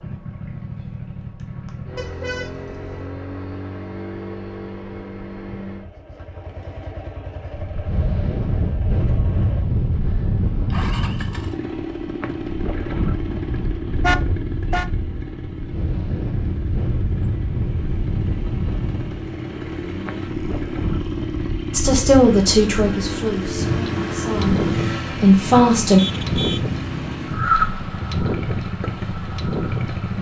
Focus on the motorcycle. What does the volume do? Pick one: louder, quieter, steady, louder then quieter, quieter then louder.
louder.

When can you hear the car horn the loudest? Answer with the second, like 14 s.
14 s.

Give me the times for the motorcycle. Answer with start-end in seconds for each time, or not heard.
0.0-30.1.